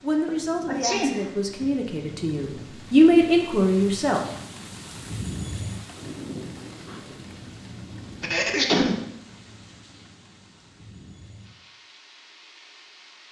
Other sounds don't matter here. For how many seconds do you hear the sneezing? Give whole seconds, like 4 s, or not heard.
2 s.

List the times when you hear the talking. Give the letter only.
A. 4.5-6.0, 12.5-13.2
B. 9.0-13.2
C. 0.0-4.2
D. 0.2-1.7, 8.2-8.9
C.